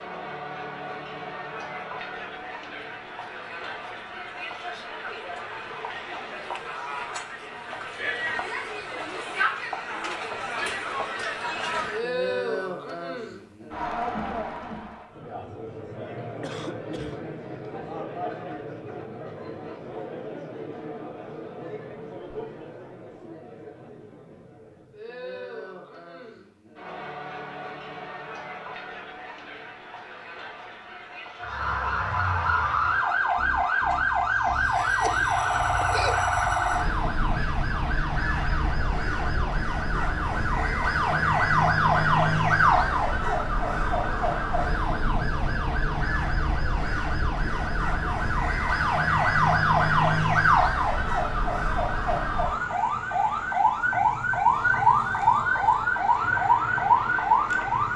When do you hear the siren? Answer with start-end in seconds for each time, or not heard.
31.4-57.9.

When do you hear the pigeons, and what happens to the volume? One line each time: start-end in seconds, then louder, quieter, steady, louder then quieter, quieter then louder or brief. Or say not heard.
not heard.